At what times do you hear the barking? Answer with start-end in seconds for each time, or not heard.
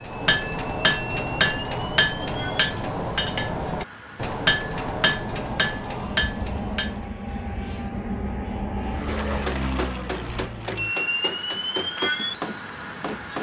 not heard.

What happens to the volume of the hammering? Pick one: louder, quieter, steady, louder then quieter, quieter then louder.
quieter.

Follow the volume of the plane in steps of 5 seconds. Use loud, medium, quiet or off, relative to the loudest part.
medium, loud, loud.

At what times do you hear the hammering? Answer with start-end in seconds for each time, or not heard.
0.0-7.1, 9.1-13.3.